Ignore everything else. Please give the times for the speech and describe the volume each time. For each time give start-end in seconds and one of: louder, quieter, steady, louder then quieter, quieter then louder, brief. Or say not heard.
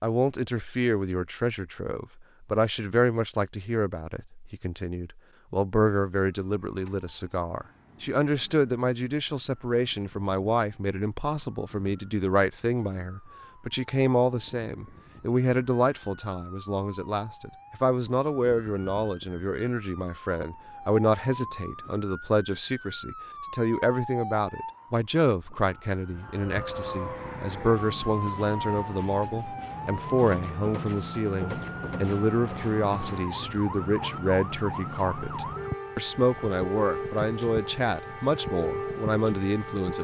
0.0-40.0 steady.